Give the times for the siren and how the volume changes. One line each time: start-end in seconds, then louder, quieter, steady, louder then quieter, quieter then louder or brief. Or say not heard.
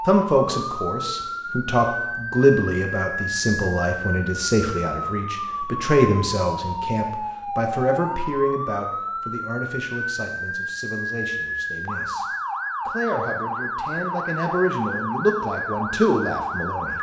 0.0-16.9 steady.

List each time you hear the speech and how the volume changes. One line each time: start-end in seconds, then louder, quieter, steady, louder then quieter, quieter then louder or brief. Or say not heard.
0.1-12.2 quieter
12.8-16.9 louder.